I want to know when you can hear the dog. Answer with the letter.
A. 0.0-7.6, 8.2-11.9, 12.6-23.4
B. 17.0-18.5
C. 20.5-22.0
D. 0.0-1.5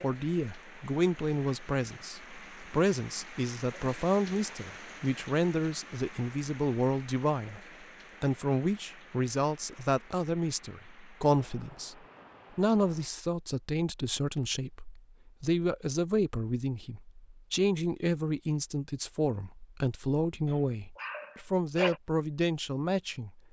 C.